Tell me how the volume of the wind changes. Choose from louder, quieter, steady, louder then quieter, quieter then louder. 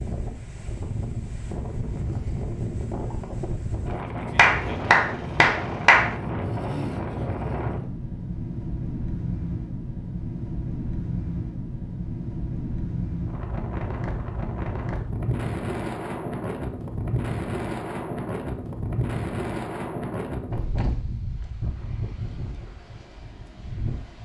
steady.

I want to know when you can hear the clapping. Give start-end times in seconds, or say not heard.
4.3-6.2.